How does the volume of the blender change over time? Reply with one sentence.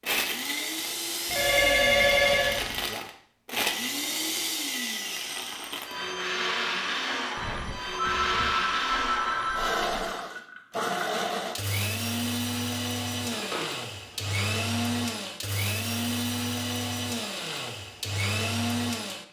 The loudness of the blender stays about the same.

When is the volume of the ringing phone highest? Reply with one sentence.
The volume of the ringing phone peaks at 2 seconds.